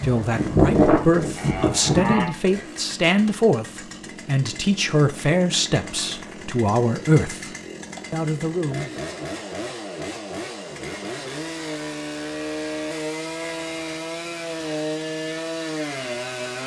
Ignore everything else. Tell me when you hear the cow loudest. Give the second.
1 s.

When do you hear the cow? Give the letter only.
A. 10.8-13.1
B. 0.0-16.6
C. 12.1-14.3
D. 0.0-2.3
D.